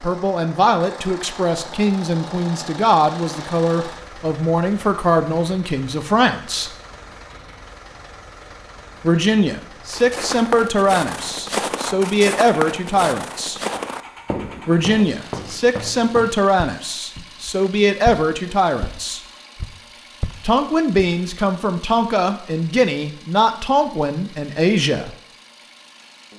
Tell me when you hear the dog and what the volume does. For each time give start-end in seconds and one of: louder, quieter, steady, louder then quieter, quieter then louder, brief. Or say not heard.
not heard.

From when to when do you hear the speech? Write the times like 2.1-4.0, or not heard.
0.0-6.7, 9.0-13.6, 14.7-19.2, 20.4-25.1.